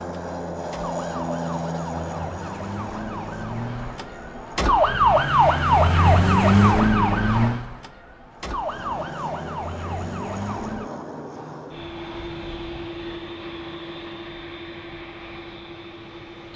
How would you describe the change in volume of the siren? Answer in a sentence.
The loudness of the siren goes up, then down.